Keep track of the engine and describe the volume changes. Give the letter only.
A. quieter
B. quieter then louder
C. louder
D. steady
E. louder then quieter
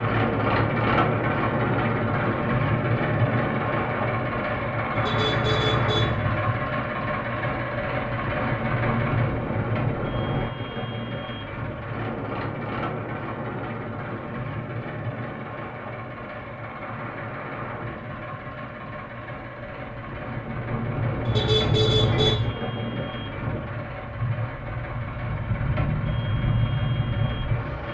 A.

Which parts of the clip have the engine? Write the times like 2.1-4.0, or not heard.
0.0-27.8.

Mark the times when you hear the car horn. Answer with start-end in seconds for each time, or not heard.
5.0-6.5, 21.2-22.5.